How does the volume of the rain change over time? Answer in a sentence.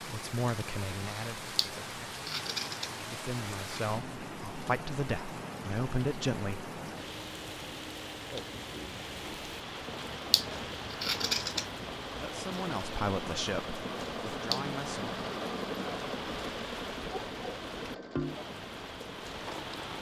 The volume of the rain stays about the same.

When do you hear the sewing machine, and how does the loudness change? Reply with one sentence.
The sewing machine can be heard from 9.7 to 19.9 s, getting louder then quieter.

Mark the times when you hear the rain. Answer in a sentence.
The rain can be heard from 0.0 to 19.9 s.